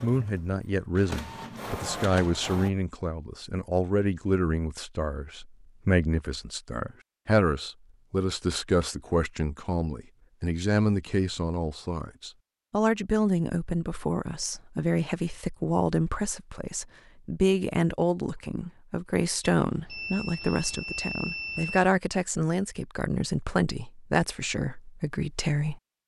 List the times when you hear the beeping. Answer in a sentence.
You can hear the beeping from 19.6 to 21.9 s.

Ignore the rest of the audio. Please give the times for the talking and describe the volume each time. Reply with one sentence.
You can hear the talking from 0.0 to 26.0 s, at a steady volume.